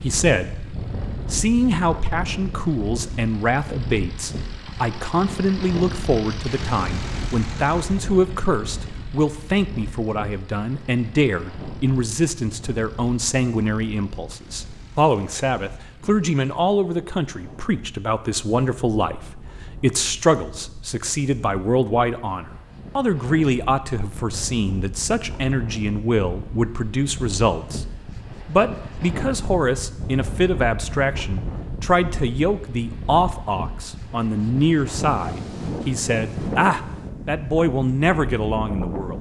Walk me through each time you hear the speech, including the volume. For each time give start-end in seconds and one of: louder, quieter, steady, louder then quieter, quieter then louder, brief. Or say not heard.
0.0-39.1 steady.